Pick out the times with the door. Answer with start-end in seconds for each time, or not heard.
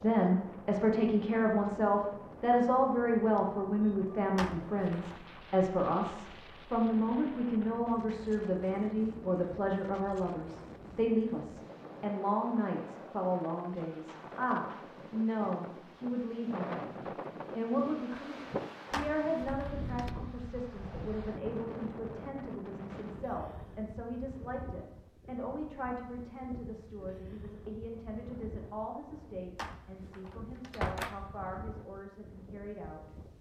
4.3-5.2, 18.9-20.1, 29.6-31.2.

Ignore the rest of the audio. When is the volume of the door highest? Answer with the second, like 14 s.
31 s.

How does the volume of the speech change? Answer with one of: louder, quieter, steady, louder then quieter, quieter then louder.
quieter.